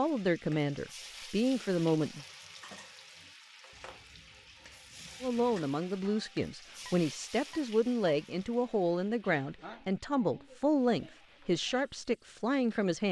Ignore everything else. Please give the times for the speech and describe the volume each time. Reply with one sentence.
The speech can be heard briefly from 0.0 to 2.2 s; and from 5.2 to 13.0 s, at a steady volume.